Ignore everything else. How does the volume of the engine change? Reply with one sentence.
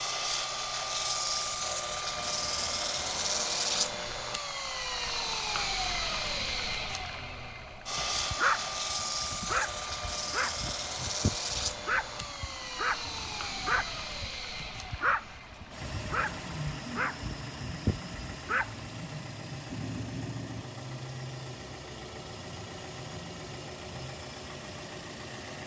The loudness of the engine goes down.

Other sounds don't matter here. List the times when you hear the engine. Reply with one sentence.
You can hear the engine from 0.0 to 25.6 s.